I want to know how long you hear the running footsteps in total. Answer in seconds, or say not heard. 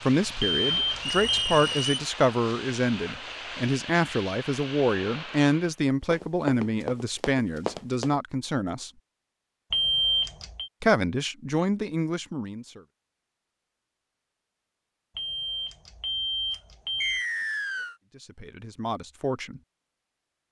2 s.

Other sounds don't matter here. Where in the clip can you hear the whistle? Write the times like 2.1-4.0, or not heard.
1.0-1.9, 17.0-17.9.